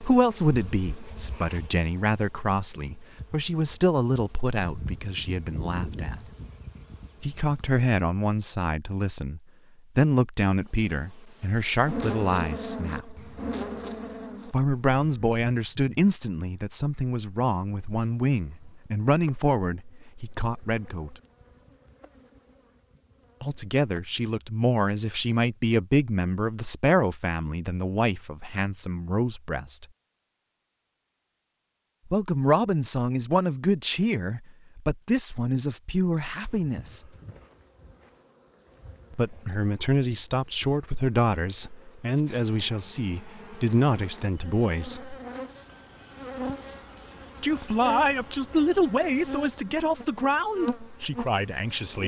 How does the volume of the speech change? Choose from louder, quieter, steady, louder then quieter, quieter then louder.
steady.